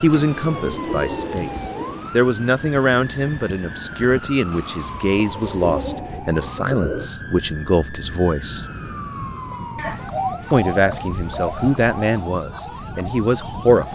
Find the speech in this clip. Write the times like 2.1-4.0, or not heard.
0.0-8.7, 10.5-13.8.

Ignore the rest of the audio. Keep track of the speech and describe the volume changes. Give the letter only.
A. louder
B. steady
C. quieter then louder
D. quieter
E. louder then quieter
B.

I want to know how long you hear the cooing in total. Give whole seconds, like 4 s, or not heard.
6 s.